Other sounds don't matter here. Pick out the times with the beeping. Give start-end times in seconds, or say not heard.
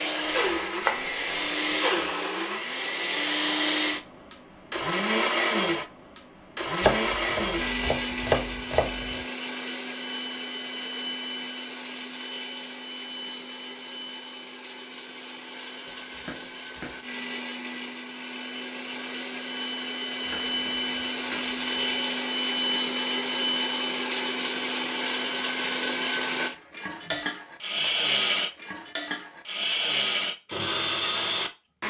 not heard.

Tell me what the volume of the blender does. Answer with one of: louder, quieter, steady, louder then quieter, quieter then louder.
quieter then louder.